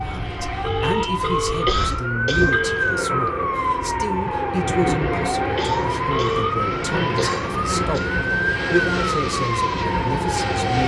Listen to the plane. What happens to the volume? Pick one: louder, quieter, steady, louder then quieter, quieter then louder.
louder.